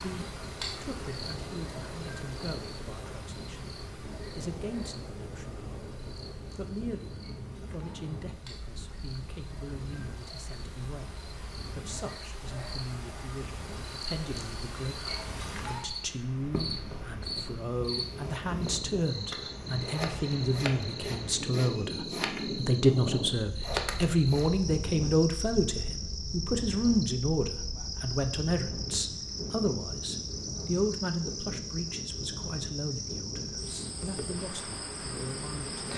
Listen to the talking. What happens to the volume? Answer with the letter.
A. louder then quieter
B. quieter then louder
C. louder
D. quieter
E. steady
A.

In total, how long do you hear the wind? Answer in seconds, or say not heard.
36 s.